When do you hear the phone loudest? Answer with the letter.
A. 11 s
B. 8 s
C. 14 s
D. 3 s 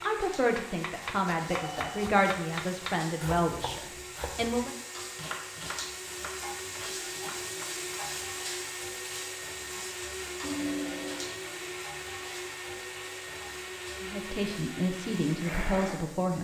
A.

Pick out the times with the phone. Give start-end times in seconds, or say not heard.
1.5-2.1, 10.4-11.3.